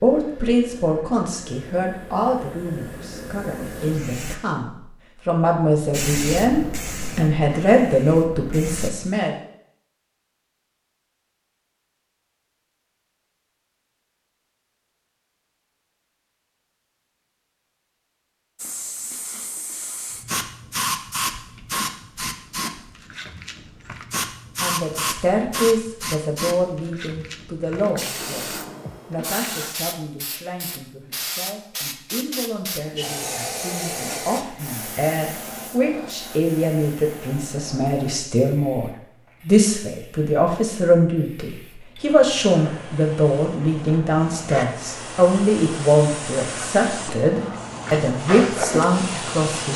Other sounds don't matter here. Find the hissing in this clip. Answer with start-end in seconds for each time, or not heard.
0.0-4.4, 5.9-8.9, 18.6-49.7.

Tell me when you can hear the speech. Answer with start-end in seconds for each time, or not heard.
0.0-9.3, 24.6-49.7.